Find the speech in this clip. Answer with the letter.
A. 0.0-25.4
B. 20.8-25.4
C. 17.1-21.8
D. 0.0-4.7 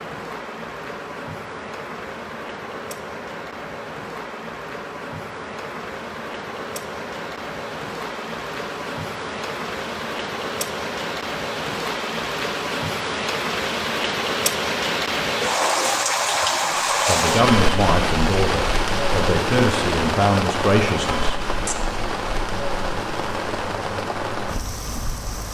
C.